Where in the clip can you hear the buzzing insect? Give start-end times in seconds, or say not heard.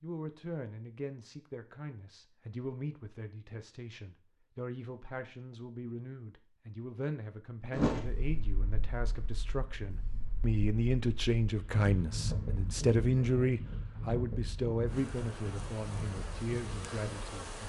14.8-17.6.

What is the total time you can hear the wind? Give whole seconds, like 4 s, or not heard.
10 s.